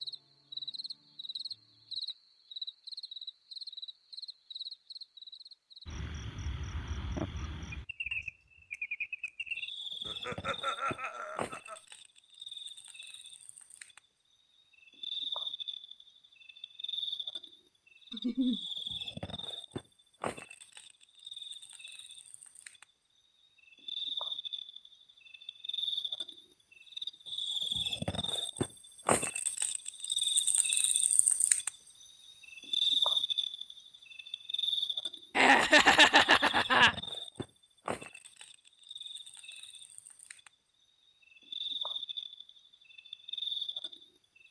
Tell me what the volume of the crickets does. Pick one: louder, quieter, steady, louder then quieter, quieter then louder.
louder then quieter.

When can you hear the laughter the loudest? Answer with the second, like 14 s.
36 s.